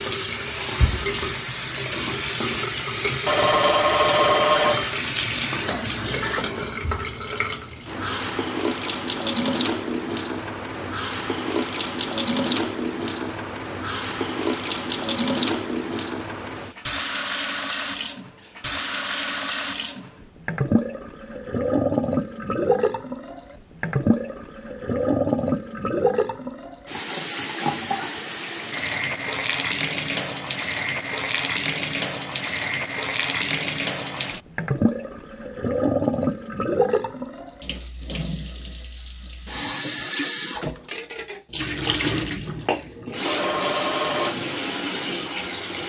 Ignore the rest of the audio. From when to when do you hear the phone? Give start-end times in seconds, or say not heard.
3.2-5.0, 43.2-44.4.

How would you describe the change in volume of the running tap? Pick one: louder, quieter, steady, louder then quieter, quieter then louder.
steady.